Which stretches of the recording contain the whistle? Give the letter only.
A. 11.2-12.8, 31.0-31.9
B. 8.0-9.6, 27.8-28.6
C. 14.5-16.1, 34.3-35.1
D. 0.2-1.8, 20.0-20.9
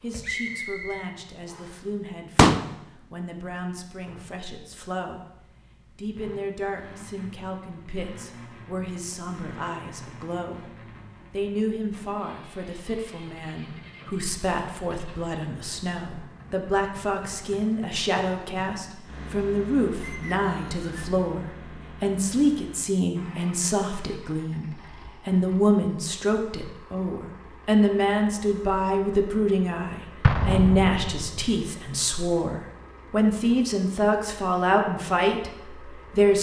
D.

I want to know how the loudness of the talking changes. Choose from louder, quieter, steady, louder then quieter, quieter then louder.
louder.